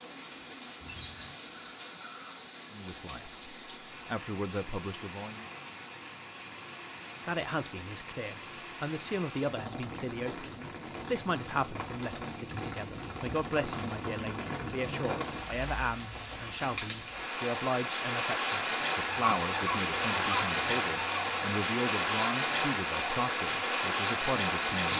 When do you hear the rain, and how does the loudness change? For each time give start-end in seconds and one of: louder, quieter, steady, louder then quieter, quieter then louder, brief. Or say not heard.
0.0-24.9 louder.